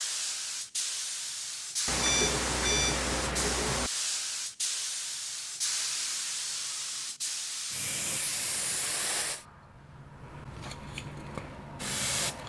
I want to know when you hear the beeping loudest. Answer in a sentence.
The volume of the beeping peaks at 2 seconds.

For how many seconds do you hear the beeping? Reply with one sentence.
The beeping can be heard for 2 seconds in total.